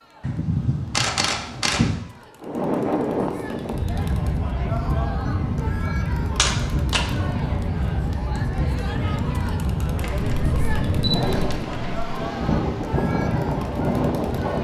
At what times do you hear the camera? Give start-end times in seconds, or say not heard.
0.2-1.9, 6.3-7.0, 10.0-12.0.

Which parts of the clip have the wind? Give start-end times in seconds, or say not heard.
2.4-14.5.